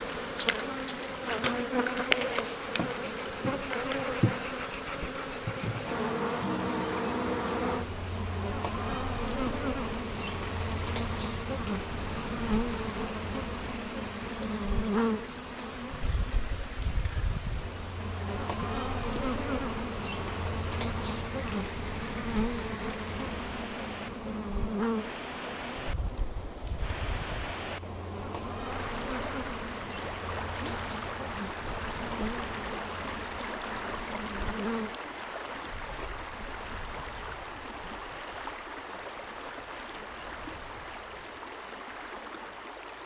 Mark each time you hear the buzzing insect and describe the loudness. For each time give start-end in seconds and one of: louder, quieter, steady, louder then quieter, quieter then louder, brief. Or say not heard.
0.0-35.0 quieter.